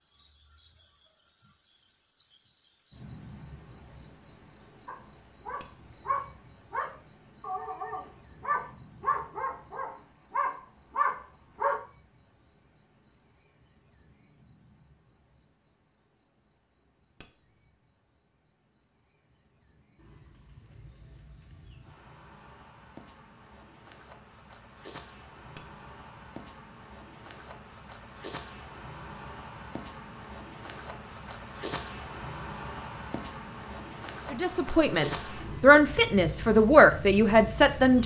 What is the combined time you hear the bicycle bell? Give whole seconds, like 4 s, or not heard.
2 s.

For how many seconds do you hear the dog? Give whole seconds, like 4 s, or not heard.
7 s.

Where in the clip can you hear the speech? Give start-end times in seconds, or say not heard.
34.3-38.0.